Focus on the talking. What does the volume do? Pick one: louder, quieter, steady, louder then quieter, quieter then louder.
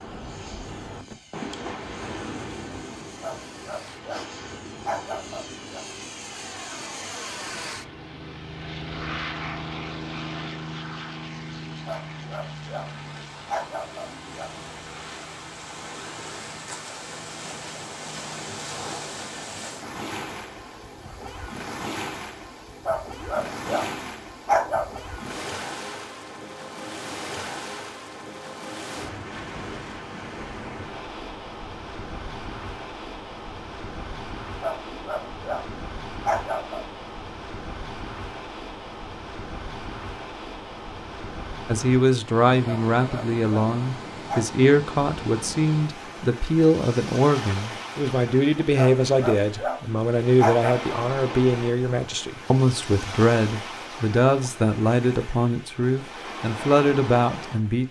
steady.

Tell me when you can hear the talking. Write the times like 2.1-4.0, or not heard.
41.6-57.8.